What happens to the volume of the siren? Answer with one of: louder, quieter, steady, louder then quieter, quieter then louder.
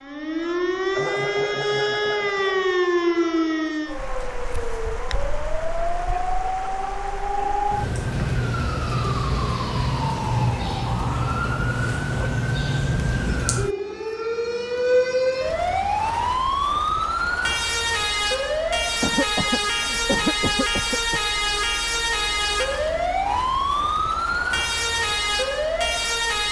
steady.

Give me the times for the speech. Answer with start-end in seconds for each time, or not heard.
not heard.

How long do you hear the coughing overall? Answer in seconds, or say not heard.
4 s.